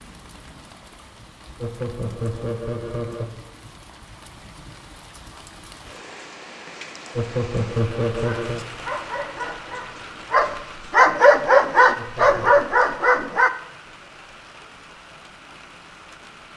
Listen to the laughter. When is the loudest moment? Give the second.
8 s.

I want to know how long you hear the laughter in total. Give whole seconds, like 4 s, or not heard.
4 s.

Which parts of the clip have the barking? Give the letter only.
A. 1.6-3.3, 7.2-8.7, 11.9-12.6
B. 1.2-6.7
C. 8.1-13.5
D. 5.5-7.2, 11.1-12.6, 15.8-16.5
C.